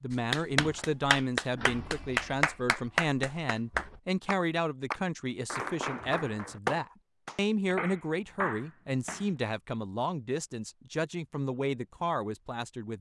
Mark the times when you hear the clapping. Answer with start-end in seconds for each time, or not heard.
0.3-9.3.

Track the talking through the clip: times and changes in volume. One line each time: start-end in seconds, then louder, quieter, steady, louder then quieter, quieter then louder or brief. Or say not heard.
0.0-12.9 steady.